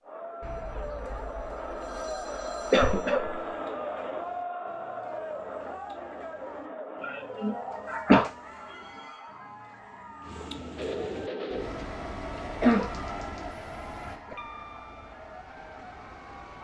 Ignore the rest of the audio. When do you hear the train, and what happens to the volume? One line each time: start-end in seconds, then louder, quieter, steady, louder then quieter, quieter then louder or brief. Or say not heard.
10.8-16.5 quieter.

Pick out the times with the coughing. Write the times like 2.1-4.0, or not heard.
2.7-3.4, 7.0-8.3, 12.3-12.9.